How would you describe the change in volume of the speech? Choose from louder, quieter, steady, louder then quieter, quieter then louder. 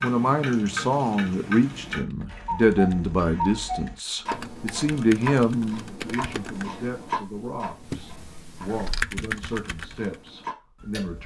quieter.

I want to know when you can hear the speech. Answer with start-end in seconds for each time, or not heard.
0.0-11.2.